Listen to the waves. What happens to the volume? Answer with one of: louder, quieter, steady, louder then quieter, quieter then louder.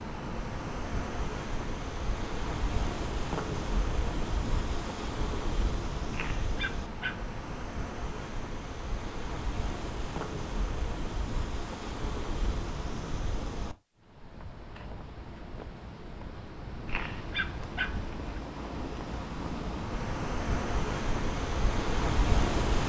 quieter then louder.